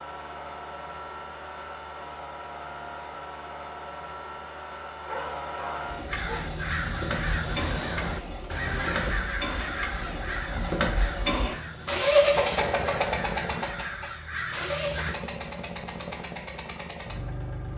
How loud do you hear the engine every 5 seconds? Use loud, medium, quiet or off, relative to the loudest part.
quiet, medium, loud, medium.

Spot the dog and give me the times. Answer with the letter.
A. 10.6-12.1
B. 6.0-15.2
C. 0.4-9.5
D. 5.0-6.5
D.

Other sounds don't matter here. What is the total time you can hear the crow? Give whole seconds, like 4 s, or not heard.
9 s.